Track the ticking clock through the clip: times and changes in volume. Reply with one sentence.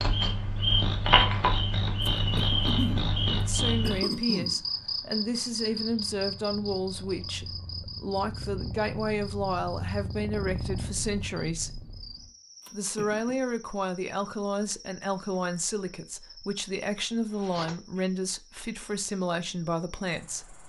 You can't hear the ticking clock here.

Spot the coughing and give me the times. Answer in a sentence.
The coughing can be heard from 2.0 to 3.1 s, from 3.8 to 4.6 s and from 12.6 to 13.3 s.